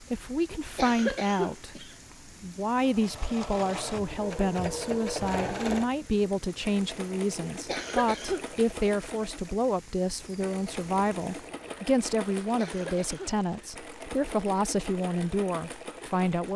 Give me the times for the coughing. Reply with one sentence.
You can hear the coughing from 0.5 to 1.9 s, from 7.7 to 8.4 s and from 12.6 to 13.3 s.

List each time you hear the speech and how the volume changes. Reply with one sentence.
You can hear the speech from 0.0 to 16.5 s, at a steady volume.